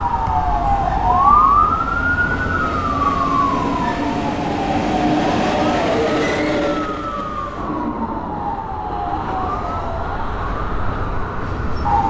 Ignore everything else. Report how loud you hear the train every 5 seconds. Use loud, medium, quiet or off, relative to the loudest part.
loud, loud, medium.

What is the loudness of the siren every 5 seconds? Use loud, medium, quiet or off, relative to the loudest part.
loud, medium, medium.